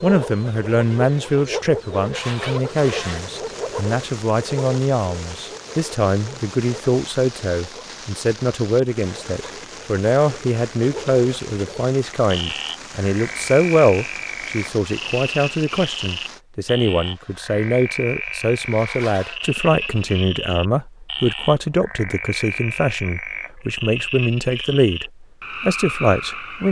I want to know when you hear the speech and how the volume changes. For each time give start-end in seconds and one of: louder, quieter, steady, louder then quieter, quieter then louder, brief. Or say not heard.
0.0-26.6 steady.